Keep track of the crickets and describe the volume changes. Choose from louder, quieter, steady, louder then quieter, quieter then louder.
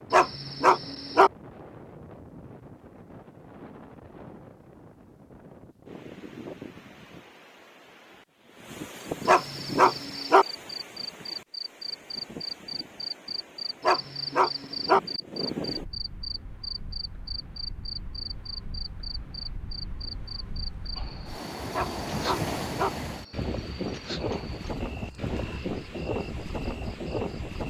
quieter.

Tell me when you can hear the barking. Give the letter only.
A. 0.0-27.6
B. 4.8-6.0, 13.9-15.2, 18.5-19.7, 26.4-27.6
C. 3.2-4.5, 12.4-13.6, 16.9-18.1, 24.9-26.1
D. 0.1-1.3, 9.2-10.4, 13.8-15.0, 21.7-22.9
D.